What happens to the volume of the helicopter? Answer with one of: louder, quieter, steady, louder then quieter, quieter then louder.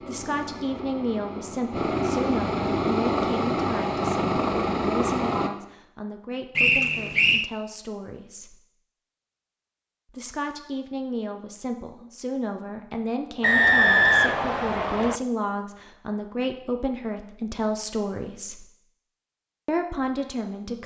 louder.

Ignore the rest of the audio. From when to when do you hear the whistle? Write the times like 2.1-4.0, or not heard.
6.5-7.5, 13.4-15.2.